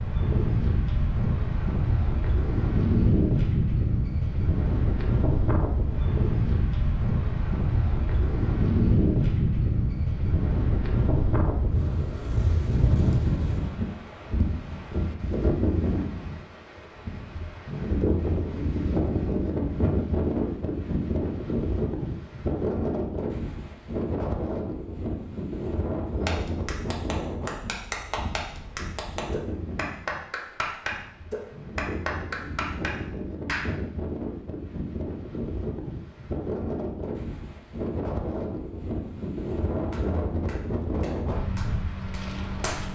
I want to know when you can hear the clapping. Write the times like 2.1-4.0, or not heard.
26.2-33.7, 39.9-42.8.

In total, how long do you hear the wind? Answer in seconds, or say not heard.
43 s.